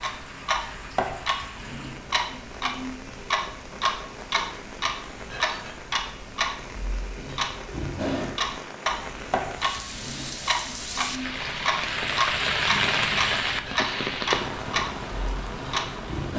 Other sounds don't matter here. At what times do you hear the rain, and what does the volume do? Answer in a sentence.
The rain can be heard from 0.0 to 16.3 s, getting louder.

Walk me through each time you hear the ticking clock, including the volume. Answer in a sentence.
The ticking clock can be heard from 0.0 to 16.3 s, at a steady volume.